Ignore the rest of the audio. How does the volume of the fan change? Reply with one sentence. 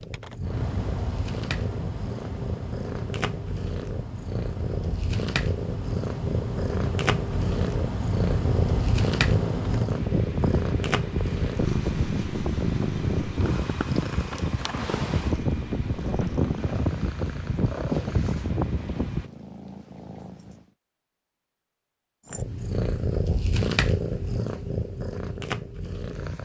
The loudness of the fan goes up.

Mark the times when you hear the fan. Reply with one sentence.
You can hear the fan from 0.0 to 19.3 s.